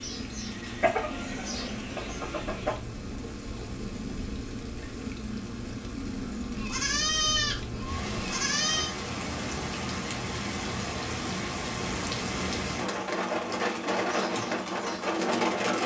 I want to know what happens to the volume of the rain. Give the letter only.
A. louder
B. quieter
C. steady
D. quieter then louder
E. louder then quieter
A.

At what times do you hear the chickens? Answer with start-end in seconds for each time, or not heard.
0.0-2.8, 12.9-15.8.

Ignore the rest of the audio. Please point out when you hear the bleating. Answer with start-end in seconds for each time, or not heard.
6.5-8.9.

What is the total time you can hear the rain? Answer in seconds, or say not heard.
16 s.